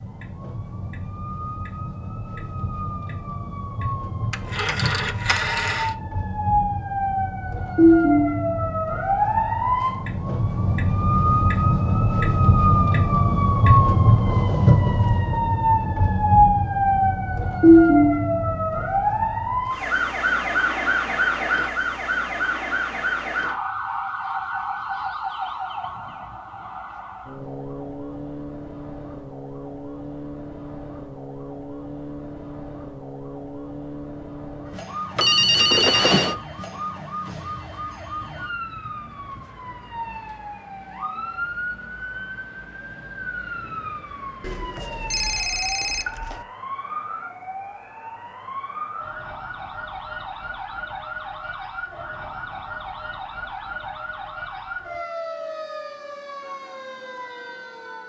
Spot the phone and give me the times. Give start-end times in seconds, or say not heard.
4.3-5.9, 35.1-36.4, 44.4-46.5.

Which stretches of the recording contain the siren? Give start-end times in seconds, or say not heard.
0.0-58.0.